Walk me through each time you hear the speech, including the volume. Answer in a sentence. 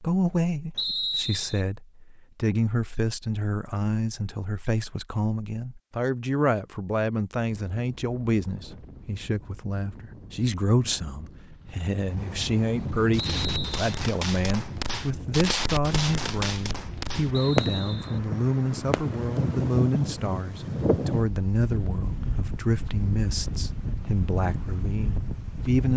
You can hear the speech from 0.0 to 25.9 s, at a steady volume.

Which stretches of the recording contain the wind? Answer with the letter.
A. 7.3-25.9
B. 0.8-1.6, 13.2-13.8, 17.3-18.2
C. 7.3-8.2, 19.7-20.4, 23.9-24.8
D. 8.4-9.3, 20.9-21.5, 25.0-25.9
A.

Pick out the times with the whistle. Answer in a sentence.
You can hear the whistle from 0.8 to 1.6 s, from 13.2 to 13.8 s and from 17.3 to 18.2 s.